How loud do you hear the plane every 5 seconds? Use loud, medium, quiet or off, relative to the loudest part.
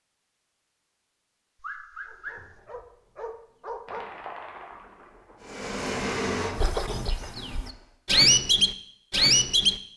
off, loud.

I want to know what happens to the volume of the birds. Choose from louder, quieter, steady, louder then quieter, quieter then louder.
louder.